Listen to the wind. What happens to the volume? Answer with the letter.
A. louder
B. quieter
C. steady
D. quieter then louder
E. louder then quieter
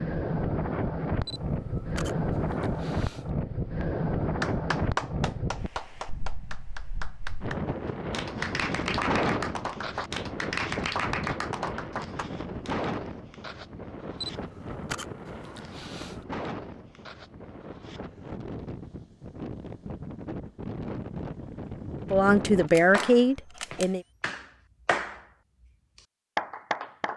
B.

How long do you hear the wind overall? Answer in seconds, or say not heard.
23 s.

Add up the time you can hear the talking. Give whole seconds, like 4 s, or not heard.
2 s.